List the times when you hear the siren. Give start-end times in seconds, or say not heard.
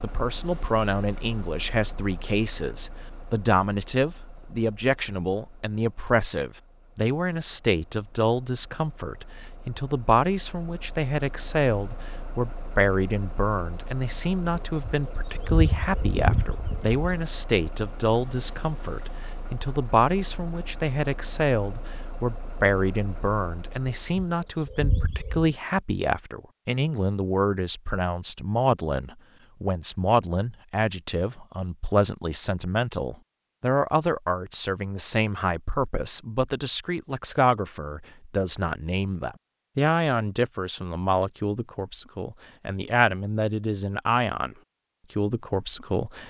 not heard.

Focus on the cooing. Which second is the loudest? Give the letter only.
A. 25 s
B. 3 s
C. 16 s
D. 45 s
C.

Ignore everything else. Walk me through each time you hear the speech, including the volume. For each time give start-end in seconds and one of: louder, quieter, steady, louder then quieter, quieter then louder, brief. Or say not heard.
0.0-44.5 steady
45.1-46.2 brief.